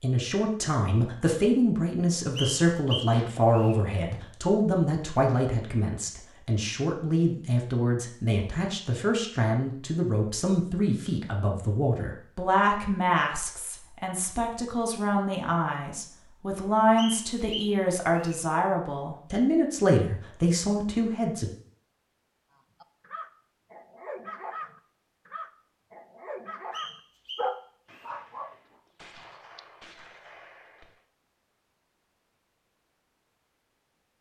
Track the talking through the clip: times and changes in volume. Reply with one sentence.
The talking can be heard from 0.0 to 21.5 s, at a steady volume.